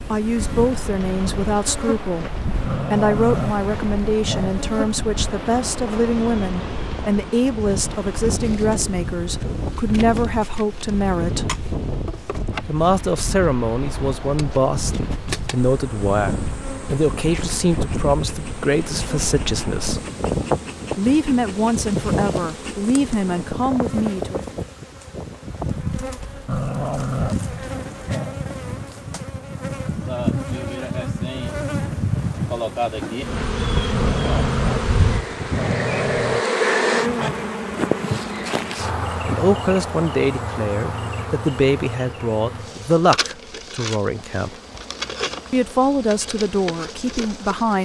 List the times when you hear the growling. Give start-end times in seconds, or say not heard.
2.6-4.6, 26.4-28.4, 33.9-36.5.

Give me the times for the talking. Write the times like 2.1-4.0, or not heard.
0.1-11.5, 12.7-20.0, 20.9-24.4, 38.6-44.5, 45.5-47.8.